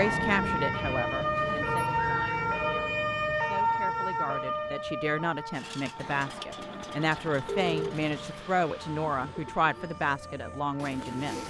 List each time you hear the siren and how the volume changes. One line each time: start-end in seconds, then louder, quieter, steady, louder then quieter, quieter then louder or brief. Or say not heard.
0.0-11.4 quieter.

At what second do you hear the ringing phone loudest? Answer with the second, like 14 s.
8 s.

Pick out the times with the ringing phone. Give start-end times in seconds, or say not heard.
2.4-3.0, 7.5-8.0.